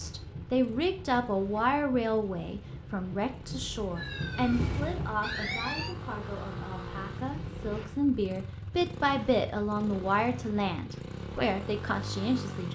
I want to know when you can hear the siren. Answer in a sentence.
You can hear the siren from 4.0 to 6.0 s.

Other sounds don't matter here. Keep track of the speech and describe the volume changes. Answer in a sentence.
The loudness of the speech goes down, then up.